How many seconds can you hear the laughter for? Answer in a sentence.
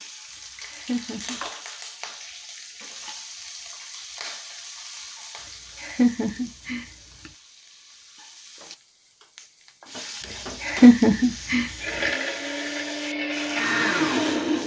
You can hear the laughter for 3 seconds altogether.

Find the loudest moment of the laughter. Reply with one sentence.
The loudest moment of the laughter is at 11 seconds.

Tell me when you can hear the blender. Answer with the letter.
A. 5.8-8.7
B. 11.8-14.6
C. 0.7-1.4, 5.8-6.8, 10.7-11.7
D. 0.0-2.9
B.